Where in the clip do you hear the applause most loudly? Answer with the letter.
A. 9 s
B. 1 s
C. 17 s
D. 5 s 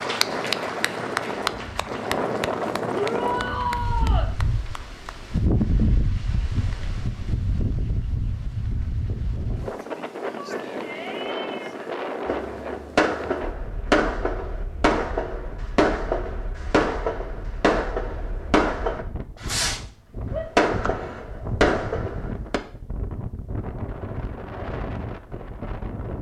B.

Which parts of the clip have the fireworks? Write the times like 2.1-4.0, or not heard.
12.2-19.8, 20.6-22.6.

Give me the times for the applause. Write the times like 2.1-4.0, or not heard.
0.0-5.2.